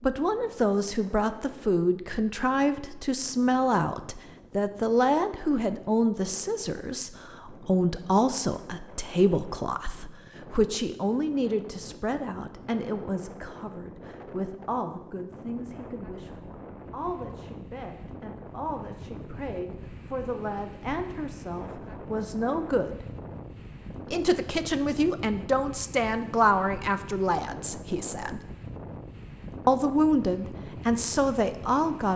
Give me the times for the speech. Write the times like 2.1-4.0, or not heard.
0.0-23.1, 24.1-28.4, 29.6-32.1.